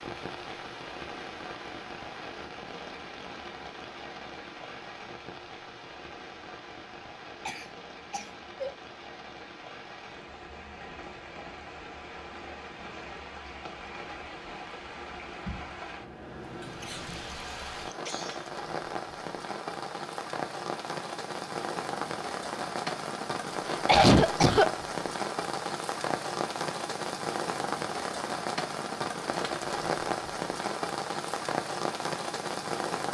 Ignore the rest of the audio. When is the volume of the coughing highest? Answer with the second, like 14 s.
24 s.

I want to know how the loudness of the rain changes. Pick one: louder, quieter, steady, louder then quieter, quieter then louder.
louder.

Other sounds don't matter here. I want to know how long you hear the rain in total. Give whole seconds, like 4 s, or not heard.
33 s.